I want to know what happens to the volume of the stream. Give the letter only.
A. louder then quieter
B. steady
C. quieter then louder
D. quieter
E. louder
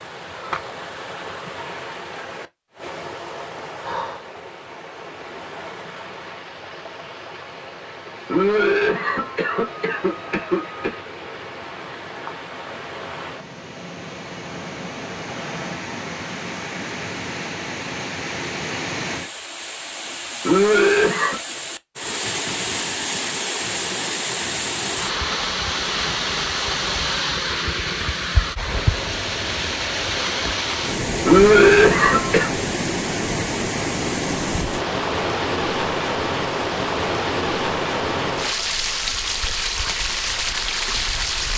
E.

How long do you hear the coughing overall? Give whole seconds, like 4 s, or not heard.
5 s.